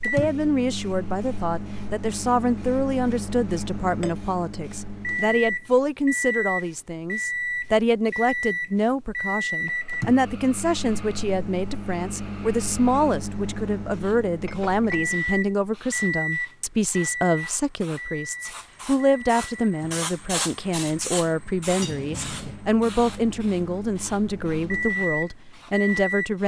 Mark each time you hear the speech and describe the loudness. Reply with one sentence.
The speech can be heard from 0.1 to 26.4 s, at a steady volume.